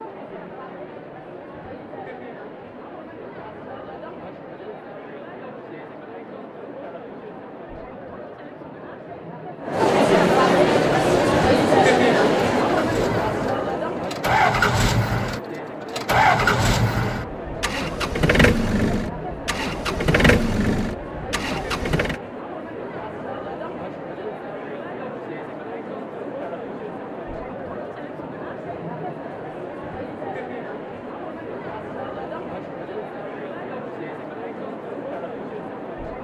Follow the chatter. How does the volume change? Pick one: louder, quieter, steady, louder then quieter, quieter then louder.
louder then quieter.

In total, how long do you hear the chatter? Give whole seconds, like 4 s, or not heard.
36 s.